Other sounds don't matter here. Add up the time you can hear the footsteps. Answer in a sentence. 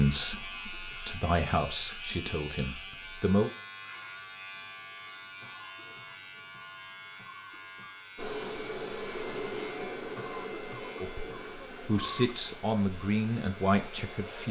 You can't hear the footsteps here.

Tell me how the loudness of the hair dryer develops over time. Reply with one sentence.
The volume of the hair dryer goes down.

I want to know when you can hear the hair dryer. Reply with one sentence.
You can hear the hair dryer from 8.2 to 14.4 s.